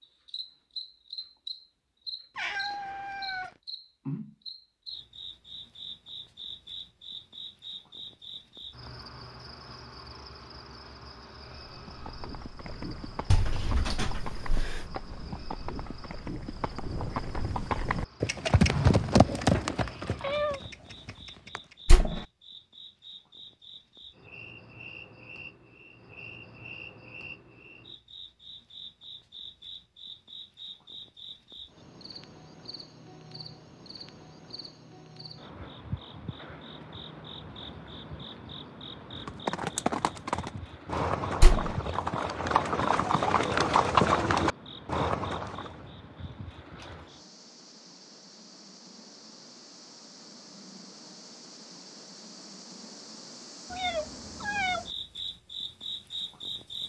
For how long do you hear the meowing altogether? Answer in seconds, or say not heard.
3 s.